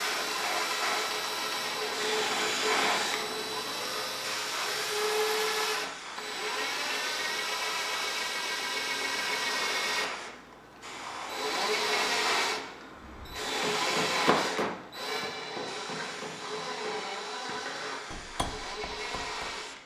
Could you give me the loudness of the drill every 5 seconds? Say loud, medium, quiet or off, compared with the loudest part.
loud, loud, loud, medium.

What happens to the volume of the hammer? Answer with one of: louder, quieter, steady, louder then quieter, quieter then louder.
quieter.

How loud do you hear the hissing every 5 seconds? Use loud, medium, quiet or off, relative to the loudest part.
loud, medium, loud, medium.